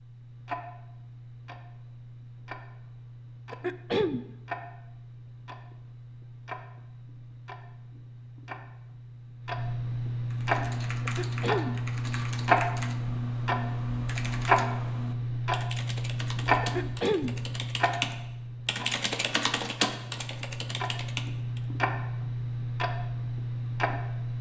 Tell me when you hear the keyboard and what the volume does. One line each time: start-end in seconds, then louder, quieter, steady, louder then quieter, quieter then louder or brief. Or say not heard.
10.3-21.6 louder.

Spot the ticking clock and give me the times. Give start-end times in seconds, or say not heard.
0.0-24.3.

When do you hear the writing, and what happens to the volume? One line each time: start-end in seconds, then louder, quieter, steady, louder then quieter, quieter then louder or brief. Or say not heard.
not heard.